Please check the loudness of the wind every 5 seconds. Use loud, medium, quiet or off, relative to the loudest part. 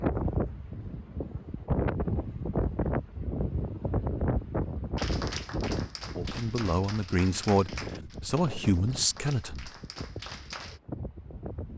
loud, medium, medium.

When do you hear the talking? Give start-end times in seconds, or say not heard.
6.2-9.7.